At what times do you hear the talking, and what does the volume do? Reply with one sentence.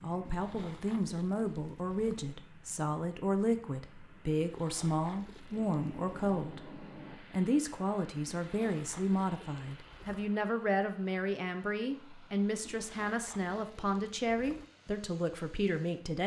You can hear the talking from 0.0 to 16.2 s, at a steady volume.